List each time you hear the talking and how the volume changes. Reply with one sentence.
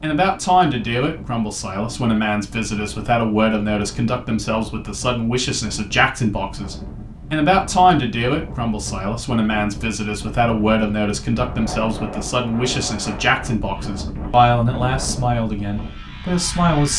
You can hear the talking from 0.0 to 16.9 s, at a steady volume.